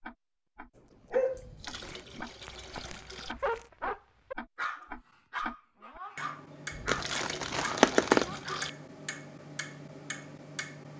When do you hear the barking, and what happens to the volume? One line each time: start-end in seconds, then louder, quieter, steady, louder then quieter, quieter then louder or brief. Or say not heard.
1.1-8.7 louder then quieter.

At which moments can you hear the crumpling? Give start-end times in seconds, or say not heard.
1.8-3.7, 6.8-8.2.